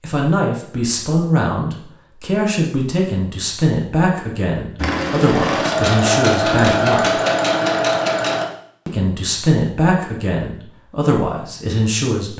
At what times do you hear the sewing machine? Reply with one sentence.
You can hear the sewing machine from 4.8 to 8.4 s.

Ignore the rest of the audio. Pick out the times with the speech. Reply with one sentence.
You can hear the speech from 0.0 to 7.2 s and from 8.8 to 12.3 s.